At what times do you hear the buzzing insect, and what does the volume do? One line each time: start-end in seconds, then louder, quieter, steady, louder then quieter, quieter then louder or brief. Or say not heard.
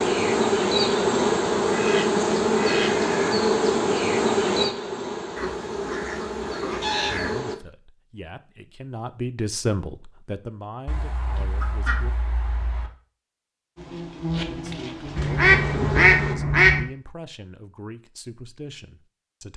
0.0-7.5 quieter
13.8-16.4 brief.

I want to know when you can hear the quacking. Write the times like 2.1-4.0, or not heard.
1.6-3.0, 5.3-7.5, 10.8-12.9, 15.2-16.9.